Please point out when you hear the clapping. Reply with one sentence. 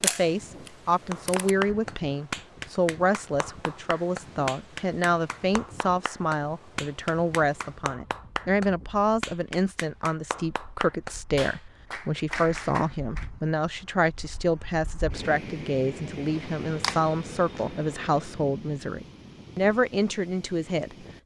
You can hear the clapping from 1.1 to 13.2 s.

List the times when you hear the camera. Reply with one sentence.
You can hear the camera from 0.0 to 1.5 s and from 16.3 to 18.4 s.